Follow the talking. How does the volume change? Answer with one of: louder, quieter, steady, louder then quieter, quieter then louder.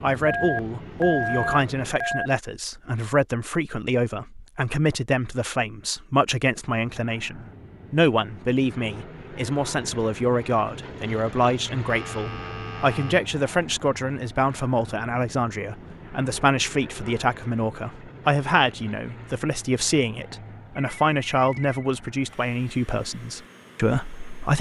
steady.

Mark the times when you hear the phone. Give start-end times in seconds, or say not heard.
0.2-2.3, 11.8-13.2, 20.8-21.9.